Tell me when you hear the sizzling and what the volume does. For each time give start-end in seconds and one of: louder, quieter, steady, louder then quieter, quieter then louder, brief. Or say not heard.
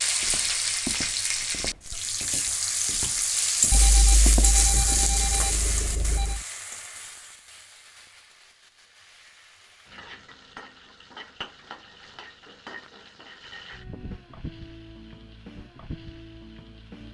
0.0-17.0 quieter then louder.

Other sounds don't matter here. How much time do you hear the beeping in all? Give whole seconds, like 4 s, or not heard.
3 s.